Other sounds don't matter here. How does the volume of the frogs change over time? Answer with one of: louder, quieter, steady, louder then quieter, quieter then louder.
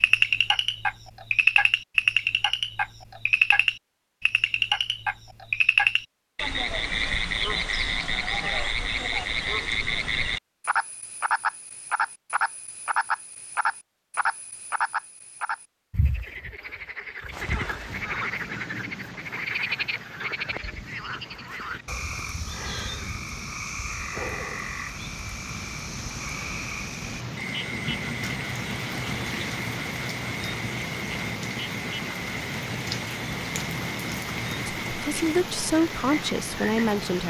quieter.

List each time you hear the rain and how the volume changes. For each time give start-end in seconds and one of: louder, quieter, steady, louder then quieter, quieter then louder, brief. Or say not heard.
17.3-37.2 louder.